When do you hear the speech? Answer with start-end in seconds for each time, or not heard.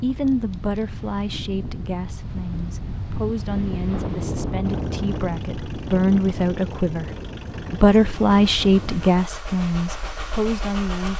0.0-7.1, 7.7-11.1.